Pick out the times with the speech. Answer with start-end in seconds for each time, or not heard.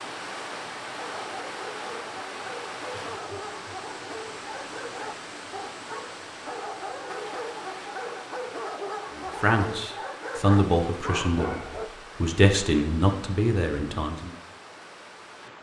9.2-14.3.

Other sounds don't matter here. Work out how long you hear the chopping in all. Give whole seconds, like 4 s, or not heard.
not heard.